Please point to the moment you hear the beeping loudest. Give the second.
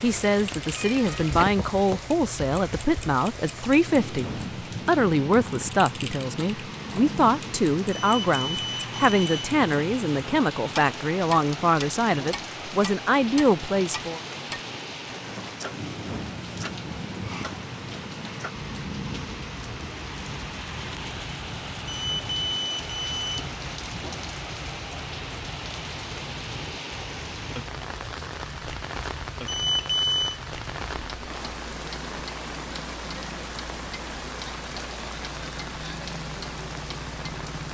30 s.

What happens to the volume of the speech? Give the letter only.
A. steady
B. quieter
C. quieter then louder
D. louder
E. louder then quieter
A.